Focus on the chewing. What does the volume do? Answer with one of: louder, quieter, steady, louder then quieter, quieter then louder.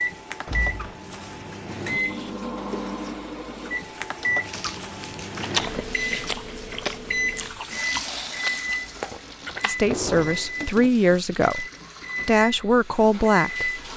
quieter then louder.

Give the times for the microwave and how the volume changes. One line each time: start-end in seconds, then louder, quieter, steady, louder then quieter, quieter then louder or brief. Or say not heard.
0.0-13.9 steady.